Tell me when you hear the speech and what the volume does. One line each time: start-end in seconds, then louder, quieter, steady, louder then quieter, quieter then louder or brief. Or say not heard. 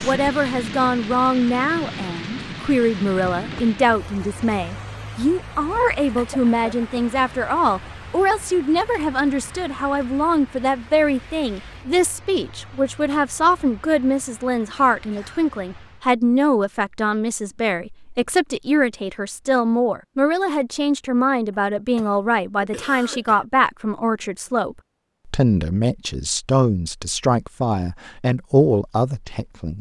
0.0-29.7 steady.